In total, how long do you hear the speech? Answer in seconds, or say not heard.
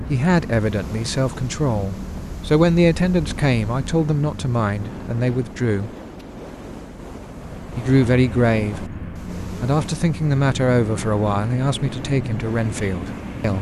12 s.